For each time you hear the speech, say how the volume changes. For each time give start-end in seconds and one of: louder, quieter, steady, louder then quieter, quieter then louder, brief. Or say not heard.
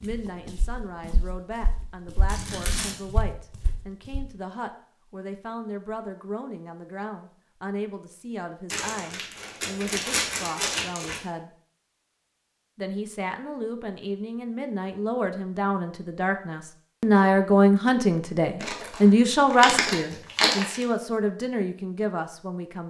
0.0-11.5 steady
12.8-22.8 louder then quieter.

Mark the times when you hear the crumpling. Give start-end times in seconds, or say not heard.
2.2-3.0, 8.7-11.2, 18.6-20.9.